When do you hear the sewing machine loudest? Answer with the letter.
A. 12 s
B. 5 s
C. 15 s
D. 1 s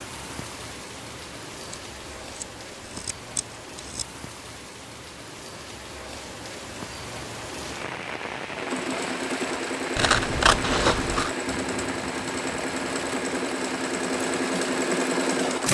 C.